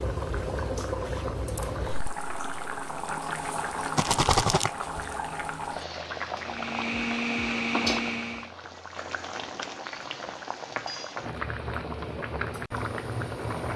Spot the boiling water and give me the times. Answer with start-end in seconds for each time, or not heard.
0.0-13.7.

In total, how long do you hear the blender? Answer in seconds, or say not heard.
2 s.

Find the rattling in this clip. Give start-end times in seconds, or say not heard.
4.0-4.7.